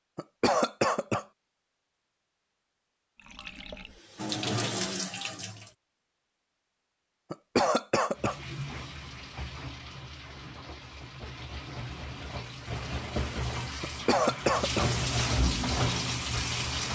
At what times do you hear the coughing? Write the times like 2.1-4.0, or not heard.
0.1-1.2, 7.3-8.3, 13.8-14.9.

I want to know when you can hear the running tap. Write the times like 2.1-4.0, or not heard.
3.1-5.7, 8.2-16.8.